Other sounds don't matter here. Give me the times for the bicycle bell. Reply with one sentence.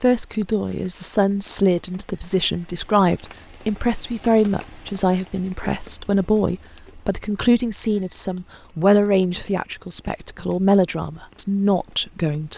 The bicycle bell can be heard from 2.1 to 2.8 s and from 7.8 to 8.4 s.